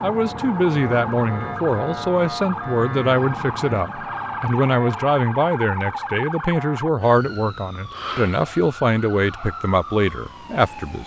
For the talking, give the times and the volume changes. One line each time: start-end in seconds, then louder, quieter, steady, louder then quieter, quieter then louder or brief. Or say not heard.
0.0-11.0 steady.